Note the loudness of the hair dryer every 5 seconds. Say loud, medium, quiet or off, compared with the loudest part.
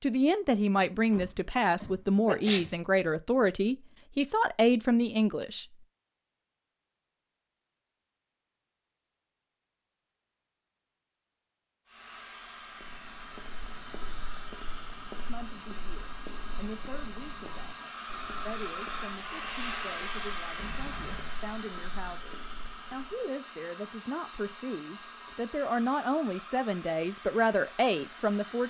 off, off, medium, loud, loud, medium.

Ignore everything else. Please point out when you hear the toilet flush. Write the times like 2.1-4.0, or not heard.
not heard.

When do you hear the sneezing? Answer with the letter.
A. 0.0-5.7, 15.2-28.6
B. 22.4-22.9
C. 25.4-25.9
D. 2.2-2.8
D.